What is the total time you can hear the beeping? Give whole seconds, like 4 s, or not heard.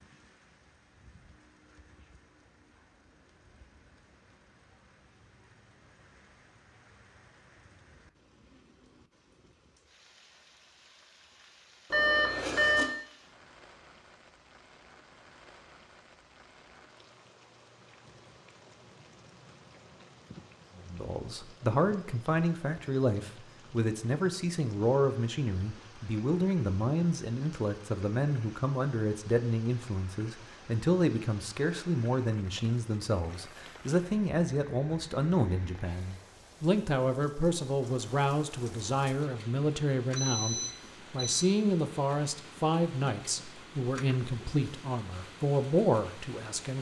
2 s.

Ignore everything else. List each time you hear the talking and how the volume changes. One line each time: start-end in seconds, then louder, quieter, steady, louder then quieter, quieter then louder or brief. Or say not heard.
20.8-46.7 steady.